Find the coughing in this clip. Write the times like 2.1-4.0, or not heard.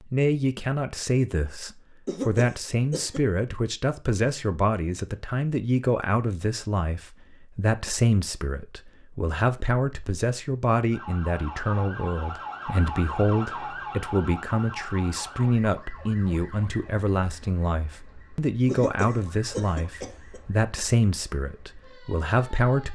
2.0-3.2, 18.6-20.4.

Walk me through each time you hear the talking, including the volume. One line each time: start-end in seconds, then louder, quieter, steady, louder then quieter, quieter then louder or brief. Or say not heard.
0.0-22.8 steady.